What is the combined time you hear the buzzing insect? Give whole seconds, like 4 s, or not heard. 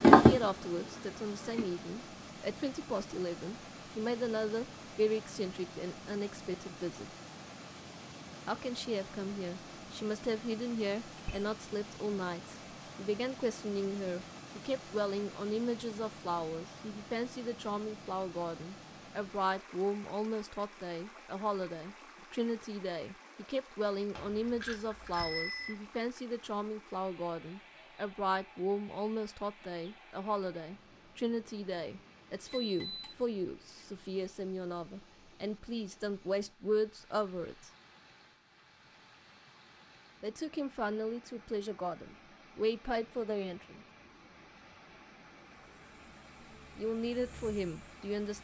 4 s.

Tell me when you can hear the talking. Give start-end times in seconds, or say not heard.
0.1-7.0, 8.4-37.7, 40.2-43.9, 46.8-48.4.